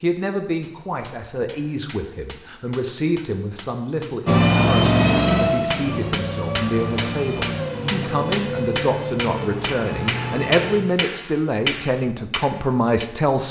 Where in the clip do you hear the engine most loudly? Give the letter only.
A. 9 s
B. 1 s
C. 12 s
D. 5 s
D.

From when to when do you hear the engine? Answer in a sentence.
The engine can be heard from 4.2 to 10.8 s.